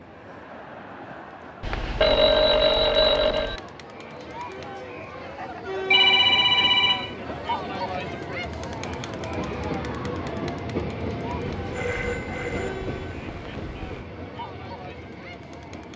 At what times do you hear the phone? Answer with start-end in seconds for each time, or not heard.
1.6-3.6, 5.9-7.2, 11.6-14.1.